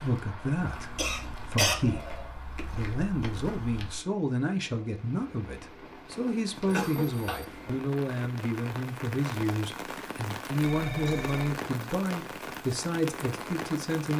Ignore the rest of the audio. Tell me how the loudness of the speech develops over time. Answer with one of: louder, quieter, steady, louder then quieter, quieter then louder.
steady.